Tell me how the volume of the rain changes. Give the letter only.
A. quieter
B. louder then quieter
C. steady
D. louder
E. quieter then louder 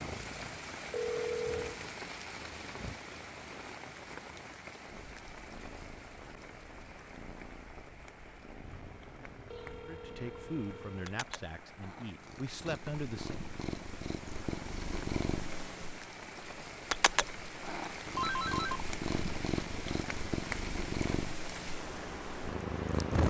E.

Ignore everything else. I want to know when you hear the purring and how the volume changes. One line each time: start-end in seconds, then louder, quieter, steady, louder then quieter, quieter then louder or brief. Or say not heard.
0.0-23.2 louder.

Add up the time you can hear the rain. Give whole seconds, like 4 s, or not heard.
23 s.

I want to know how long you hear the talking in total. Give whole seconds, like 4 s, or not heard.
4 s.